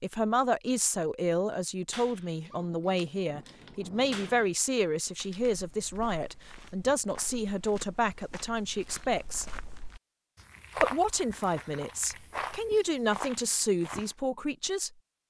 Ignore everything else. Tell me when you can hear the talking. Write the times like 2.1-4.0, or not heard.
0.0-9.4, 10.8-14.9.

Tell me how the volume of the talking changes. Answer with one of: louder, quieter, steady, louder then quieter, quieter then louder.
steady.